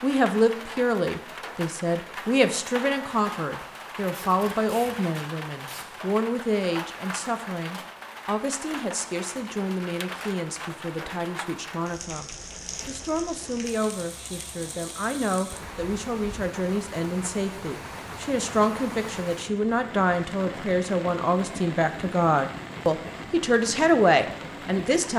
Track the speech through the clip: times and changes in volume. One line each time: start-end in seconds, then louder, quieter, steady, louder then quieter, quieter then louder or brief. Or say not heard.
0.0-25.1 quieter then louder.